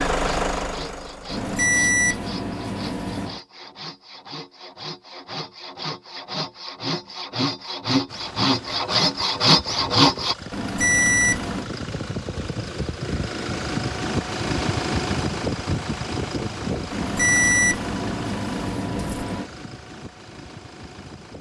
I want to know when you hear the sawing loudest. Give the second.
10 s.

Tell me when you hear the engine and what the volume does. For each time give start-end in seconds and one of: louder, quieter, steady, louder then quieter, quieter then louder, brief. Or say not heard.
0.0-1.6 brief
8.1-21.3 louder then quieter.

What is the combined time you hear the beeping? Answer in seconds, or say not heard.
6 s.